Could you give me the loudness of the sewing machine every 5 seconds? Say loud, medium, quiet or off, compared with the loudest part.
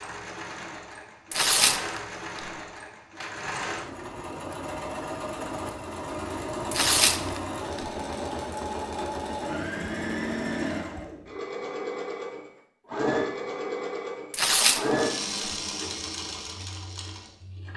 medium, loud, loud, loud.